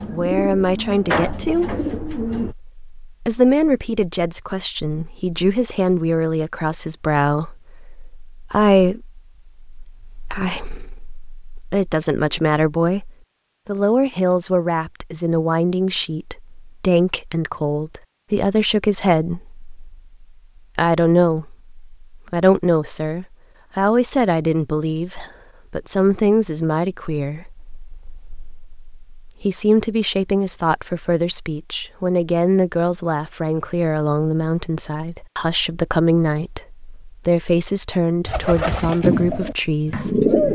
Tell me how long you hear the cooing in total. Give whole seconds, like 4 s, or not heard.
5 s.